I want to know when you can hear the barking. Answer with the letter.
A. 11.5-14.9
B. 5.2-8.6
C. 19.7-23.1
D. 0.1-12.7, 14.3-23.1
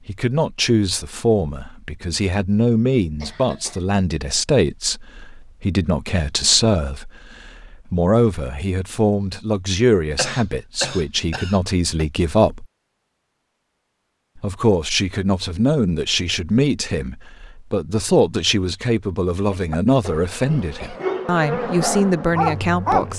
C.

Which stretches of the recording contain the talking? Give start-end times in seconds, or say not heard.
0.1-12.7, 14.3-23.1.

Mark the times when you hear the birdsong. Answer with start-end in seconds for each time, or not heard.
not heard.